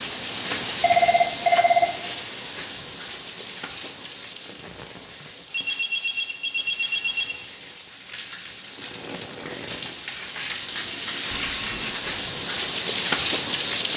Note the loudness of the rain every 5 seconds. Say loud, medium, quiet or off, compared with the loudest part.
medium, quiet, loud.